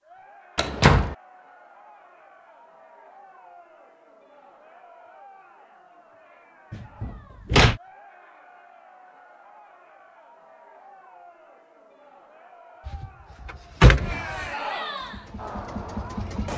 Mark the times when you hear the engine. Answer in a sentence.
The engine can be heard from 15.0 to 16.5 s.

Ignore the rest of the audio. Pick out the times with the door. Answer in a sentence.
The door can be heard from 0.6 to 1.1 s, from 6.7 to 7.8 s and from 12.8 to 14.4 s.